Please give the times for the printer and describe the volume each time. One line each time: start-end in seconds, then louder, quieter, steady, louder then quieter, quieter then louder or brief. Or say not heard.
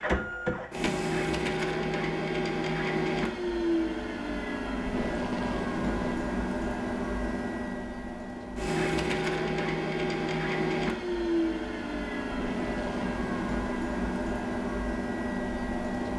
0.0-16.1 steady.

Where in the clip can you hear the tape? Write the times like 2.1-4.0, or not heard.
4.8-6.3, 12.2-13.6.